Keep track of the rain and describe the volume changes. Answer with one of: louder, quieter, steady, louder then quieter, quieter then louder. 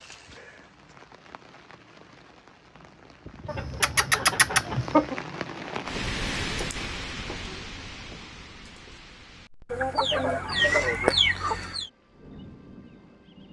louder then quieter.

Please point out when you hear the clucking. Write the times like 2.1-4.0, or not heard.
3.5-5.2, 9.7-11.9.